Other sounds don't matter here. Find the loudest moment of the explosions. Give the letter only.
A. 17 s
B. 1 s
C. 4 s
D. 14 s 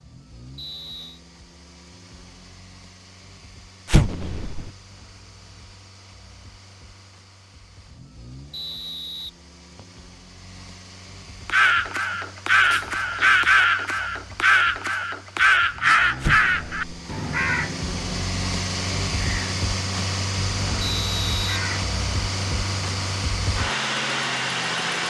C.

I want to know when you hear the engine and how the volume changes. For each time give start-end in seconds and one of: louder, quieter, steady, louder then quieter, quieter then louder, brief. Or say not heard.
0.0-25.0 louder.